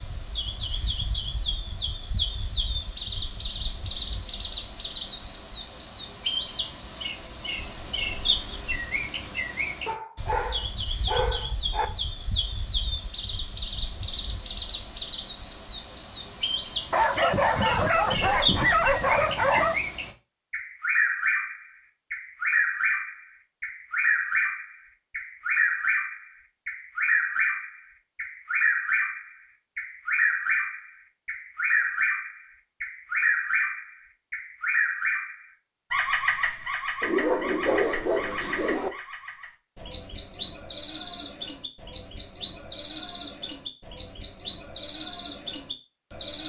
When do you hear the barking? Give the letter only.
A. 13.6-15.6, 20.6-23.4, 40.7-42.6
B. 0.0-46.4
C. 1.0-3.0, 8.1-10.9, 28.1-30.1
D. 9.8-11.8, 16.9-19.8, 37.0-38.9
D.